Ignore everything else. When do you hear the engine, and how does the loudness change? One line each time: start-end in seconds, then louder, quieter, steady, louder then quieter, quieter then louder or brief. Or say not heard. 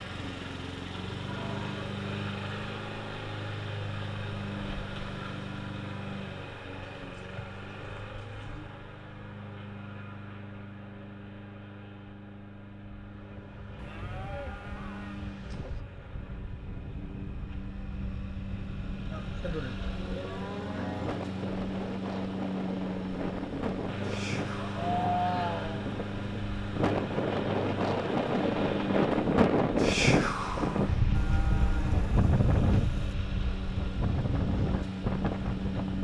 0.0-35.9 quieter then louder.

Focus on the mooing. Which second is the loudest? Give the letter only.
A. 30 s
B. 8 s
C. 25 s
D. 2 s
C.